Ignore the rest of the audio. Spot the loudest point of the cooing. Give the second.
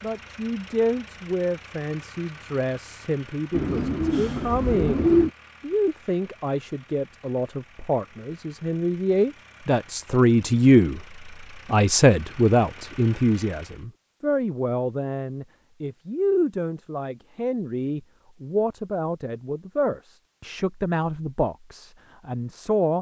5 s.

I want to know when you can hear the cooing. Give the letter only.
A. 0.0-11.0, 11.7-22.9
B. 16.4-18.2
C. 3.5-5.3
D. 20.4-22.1
C.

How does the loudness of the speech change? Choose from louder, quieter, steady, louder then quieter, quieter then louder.
louder then quieter.